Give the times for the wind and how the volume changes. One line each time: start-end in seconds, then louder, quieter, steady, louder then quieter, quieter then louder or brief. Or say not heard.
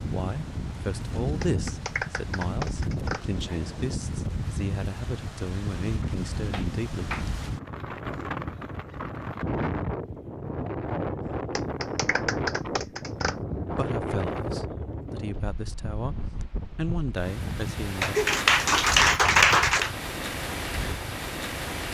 0.0-21.8 steady.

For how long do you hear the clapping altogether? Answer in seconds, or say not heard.
7 s.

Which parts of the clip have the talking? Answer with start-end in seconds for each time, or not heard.
0.1-7.0, 13.8-18.1.